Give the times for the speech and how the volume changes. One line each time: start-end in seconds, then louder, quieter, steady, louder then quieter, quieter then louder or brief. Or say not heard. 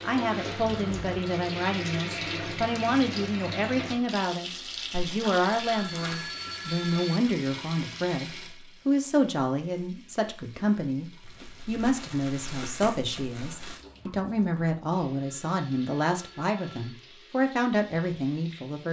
0.0-18.8 steady.